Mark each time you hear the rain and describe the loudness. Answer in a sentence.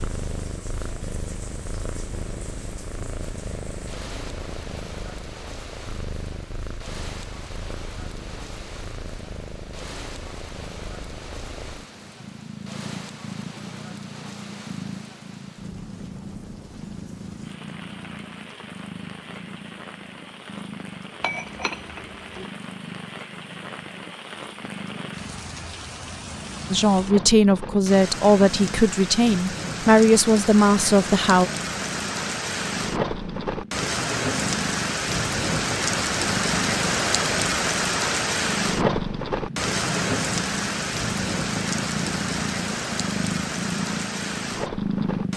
You can hear the rain from 0.0 to 45.3 s, getting louder.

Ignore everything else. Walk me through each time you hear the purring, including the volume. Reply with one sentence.
The purring can be heard from 0.0 to 45.3 s, getting louder.